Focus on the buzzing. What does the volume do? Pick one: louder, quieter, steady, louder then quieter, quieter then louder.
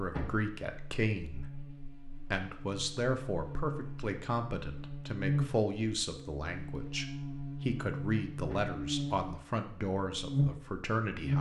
louder.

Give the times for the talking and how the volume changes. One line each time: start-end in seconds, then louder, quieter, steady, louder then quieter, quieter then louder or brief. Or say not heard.
0.0-11.3 steady.